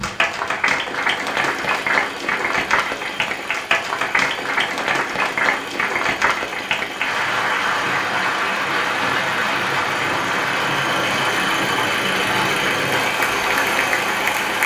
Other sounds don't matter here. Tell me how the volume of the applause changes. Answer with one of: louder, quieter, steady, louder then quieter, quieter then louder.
steady.